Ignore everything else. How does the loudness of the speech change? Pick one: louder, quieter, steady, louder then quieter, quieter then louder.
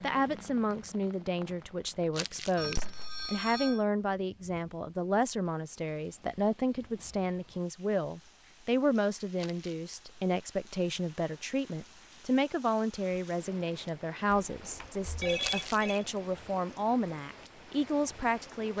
steady.